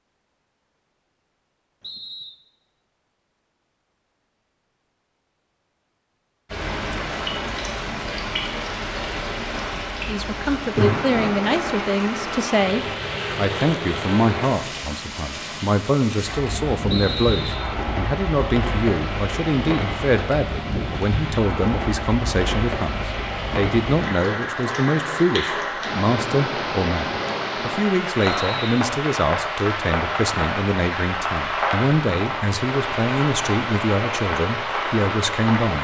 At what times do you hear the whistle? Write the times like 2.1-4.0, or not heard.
1.8-2.4, 16.9-17.8, 28.2-28.7.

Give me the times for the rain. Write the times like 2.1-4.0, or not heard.
6.5-35.7.